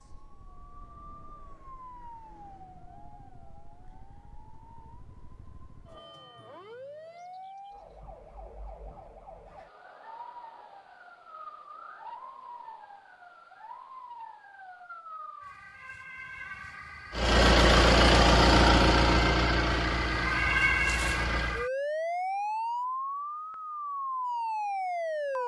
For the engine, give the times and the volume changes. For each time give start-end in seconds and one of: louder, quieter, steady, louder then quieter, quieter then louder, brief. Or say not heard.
17.1-21.6 quieter.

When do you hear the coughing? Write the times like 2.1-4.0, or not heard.
not heard.